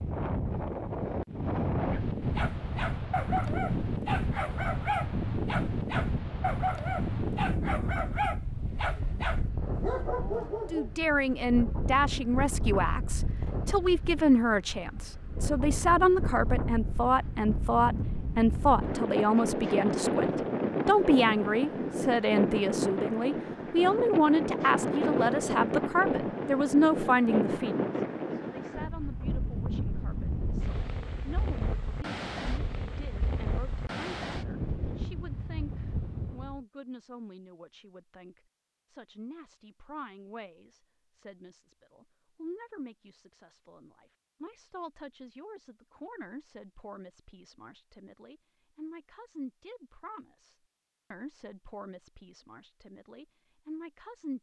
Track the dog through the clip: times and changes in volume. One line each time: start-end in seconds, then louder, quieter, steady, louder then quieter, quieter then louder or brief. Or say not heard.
2.4-10.9 steady.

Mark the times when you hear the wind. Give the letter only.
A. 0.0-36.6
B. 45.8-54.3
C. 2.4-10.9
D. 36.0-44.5
A.